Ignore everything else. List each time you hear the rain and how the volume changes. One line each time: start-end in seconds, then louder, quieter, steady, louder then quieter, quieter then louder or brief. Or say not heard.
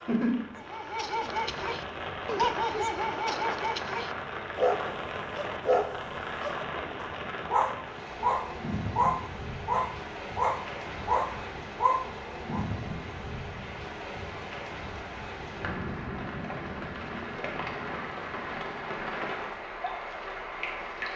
0.0-21.1 steady.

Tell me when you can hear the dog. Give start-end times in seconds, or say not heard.
0.6-12.7.